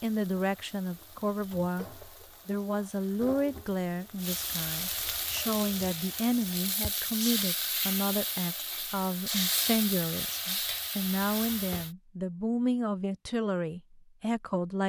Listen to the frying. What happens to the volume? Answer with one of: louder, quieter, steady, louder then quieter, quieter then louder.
louder.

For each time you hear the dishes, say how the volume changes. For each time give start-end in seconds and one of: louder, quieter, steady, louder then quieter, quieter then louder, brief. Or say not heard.
not heard.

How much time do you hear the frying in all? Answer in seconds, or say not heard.
12 s.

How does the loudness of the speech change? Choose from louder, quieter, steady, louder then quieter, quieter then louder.
steady.